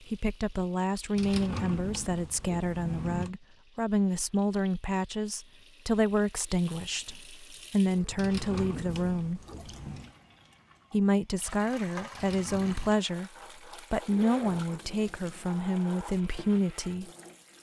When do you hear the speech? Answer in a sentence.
You can hear the speech from 0.1 to 9.4 s, from 10.9 to 13.3 s and from 13.9 to 17.1 s.